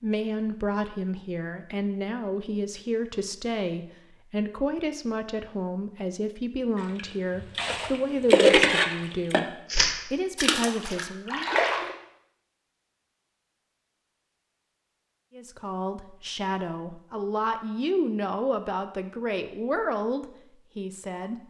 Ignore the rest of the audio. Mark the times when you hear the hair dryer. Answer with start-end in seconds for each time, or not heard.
not heard.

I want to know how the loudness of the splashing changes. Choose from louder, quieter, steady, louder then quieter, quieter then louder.
louder then quieter.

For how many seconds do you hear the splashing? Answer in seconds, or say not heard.
5 s.